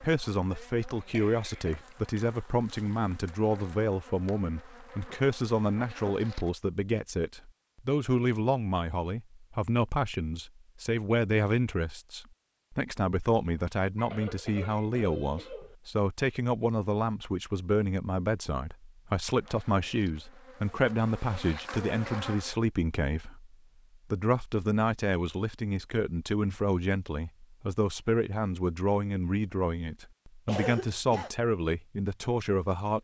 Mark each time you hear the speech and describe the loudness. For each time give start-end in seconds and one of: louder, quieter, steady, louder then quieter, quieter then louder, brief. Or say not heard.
0.0-32.9 steady.